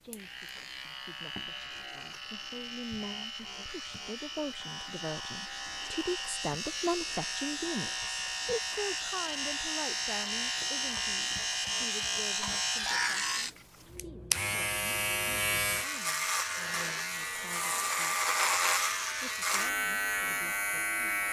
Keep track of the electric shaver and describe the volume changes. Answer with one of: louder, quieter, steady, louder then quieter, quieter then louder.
louder.